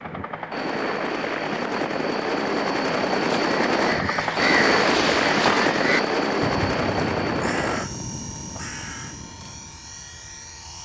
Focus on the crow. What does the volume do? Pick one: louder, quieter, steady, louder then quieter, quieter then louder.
quieter.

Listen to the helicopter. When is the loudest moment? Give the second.
5 s.